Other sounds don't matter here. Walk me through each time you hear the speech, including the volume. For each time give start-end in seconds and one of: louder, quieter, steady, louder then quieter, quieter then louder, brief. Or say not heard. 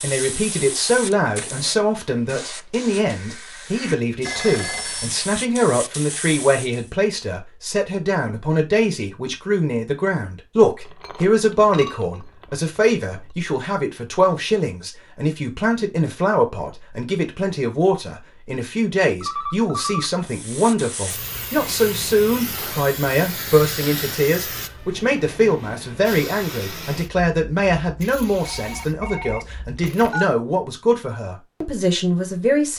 0.0-32.7 steady.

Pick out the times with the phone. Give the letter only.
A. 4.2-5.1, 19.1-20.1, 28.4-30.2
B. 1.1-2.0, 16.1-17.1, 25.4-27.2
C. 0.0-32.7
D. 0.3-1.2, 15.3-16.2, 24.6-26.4
A.